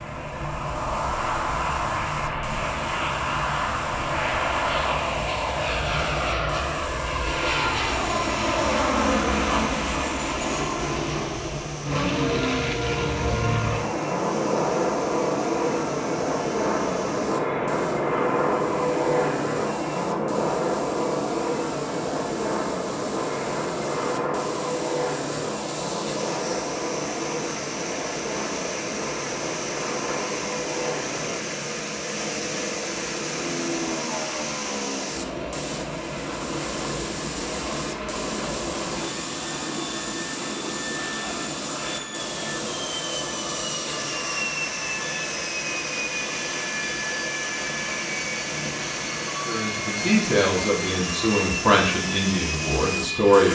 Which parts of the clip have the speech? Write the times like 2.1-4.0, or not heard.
49.5-53.5.